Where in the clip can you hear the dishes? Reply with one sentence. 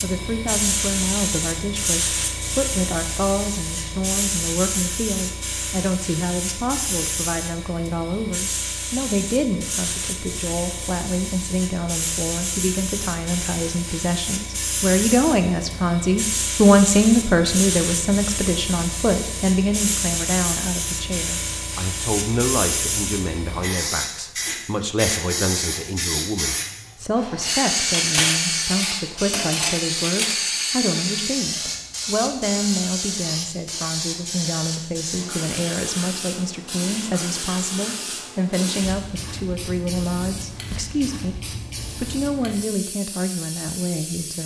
You can hear the dishes from 27.9 to 30.4 s.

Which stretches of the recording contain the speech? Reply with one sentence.
The speech can be heard from 0.0 to 44.4 s.